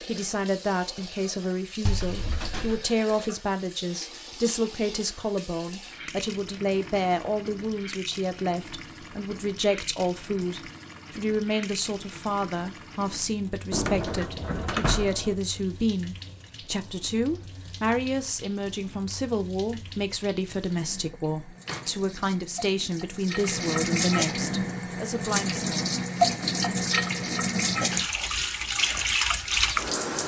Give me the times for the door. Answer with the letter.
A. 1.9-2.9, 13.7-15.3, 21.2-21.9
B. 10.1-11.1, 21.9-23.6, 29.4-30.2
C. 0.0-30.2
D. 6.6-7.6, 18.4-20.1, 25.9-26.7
A.